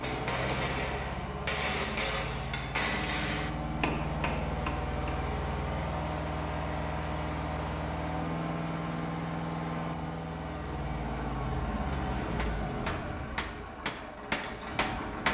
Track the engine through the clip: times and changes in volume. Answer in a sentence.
You can hear the engine from 0.0 to 15.2 s, at a steady volume.